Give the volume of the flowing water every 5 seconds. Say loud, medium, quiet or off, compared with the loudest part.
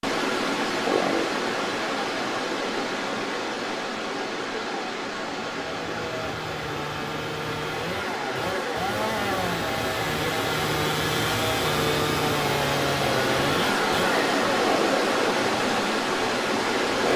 loud, medium, loud, loud.